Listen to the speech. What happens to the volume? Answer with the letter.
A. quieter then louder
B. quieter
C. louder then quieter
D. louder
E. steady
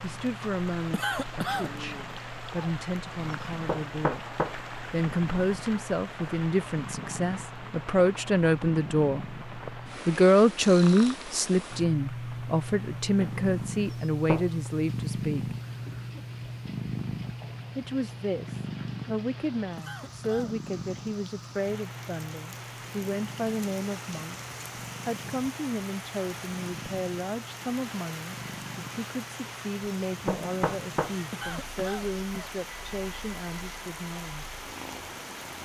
C.